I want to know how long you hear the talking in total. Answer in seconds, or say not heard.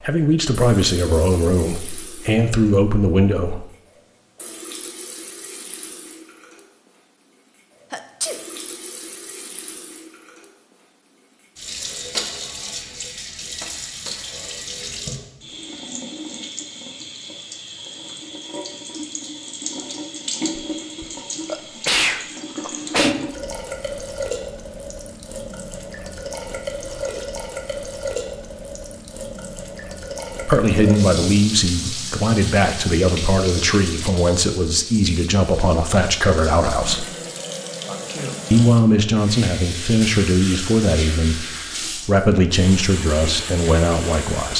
16 s.